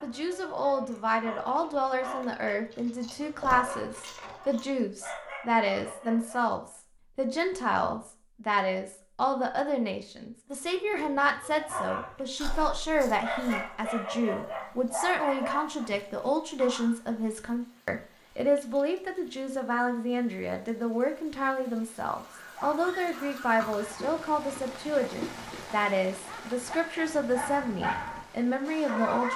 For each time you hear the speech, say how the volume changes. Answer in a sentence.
You can hear the speech from 0.0 to 29.3 s, at a steady volume.